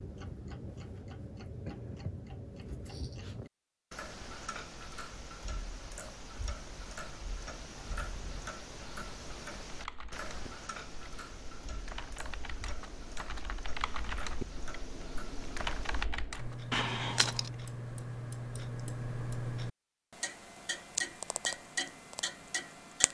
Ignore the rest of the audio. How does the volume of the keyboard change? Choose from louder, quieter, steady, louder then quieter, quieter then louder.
louder.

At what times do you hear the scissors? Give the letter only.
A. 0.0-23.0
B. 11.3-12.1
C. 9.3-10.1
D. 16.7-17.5
D.